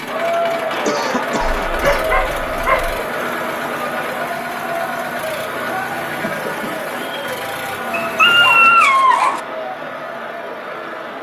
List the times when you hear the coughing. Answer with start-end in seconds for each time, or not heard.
0.7-2.0, 6.2-6.8.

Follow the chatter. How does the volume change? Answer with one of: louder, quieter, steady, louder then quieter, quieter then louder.
quieter.